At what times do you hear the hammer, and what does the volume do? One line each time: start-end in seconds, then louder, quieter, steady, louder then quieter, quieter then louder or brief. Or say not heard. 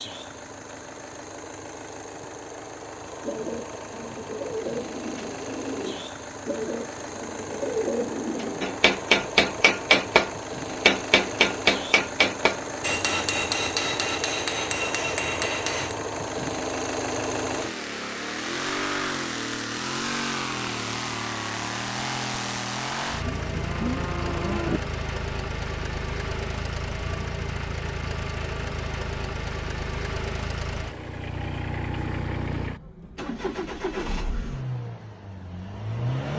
8.6-15.9 quieter.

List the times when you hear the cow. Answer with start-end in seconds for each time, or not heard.
23.2-24.8.